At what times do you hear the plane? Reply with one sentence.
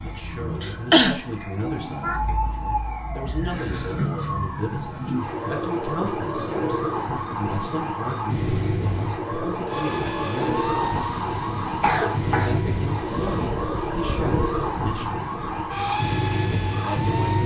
The plane can be heard from 9.7 to 17.4 s.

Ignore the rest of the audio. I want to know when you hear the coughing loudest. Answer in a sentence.
The volume of the coughing peaks at 1 second.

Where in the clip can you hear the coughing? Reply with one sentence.
The coughing can be heard from 0.6 to 2.2 s and from 11.8 to 12.6 s.